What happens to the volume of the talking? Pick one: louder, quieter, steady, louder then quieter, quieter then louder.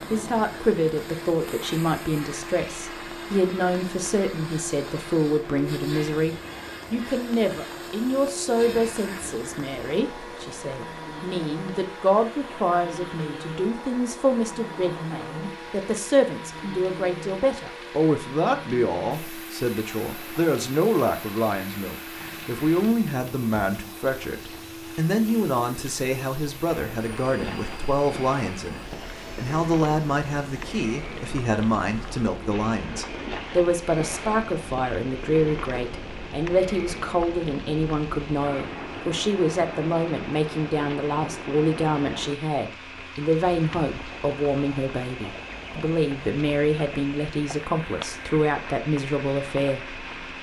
steady.